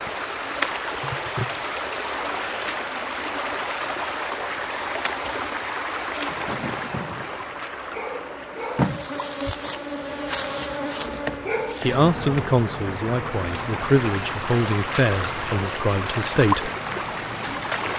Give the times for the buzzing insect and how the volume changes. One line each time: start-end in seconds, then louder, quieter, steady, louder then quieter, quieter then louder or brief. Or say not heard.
0.2-17.9 louder then quieter.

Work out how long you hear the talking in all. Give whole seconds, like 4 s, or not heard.
5 s.